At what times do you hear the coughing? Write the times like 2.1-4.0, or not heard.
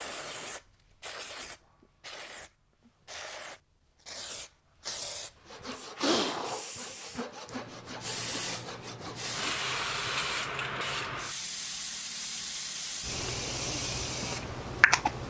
not heard.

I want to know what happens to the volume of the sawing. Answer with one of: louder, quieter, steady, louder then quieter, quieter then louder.
quieter.